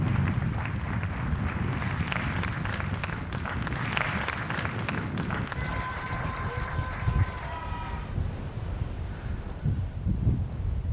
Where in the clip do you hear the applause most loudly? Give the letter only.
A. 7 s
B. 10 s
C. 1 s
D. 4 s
D.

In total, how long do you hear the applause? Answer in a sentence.
The applause can be heard for 8 seconds in total.